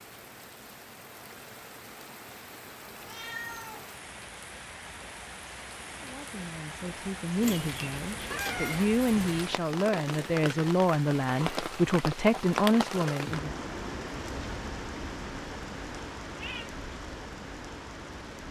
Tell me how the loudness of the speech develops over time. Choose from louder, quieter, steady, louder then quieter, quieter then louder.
louder.